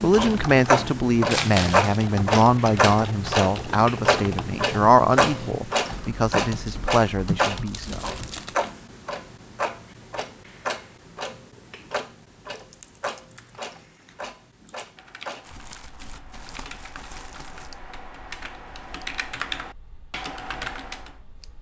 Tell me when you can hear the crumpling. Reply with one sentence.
You can hear the crumpling from 1.3 to 2.0 s, from 7.7 to 8.8 s and from 15.4 to 17.8 s.